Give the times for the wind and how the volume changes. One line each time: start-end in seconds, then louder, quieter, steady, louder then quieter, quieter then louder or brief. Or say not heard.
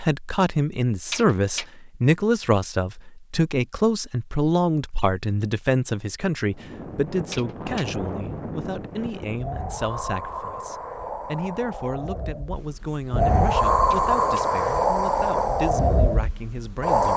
6.5-17.1 louder.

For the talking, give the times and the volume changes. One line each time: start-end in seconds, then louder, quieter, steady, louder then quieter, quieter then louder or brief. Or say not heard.
0.0-17.1 quieter.